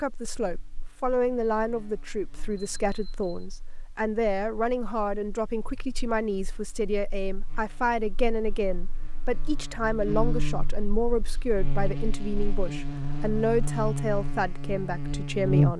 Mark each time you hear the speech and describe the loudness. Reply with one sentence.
You can hear the speech from 0.0 to 15.7 s, at a steady volume.